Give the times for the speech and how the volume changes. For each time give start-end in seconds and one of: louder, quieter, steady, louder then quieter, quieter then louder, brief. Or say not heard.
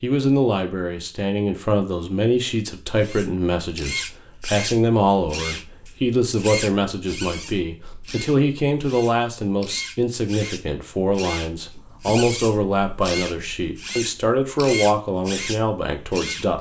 0.0-16.5 steady.